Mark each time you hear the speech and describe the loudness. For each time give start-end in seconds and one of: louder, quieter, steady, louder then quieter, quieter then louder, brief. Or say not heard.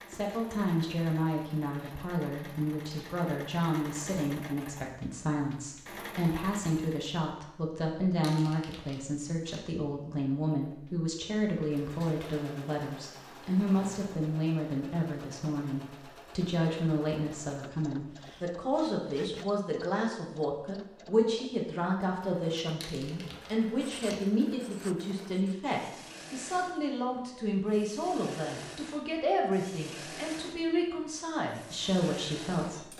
0.1-32.9 steady.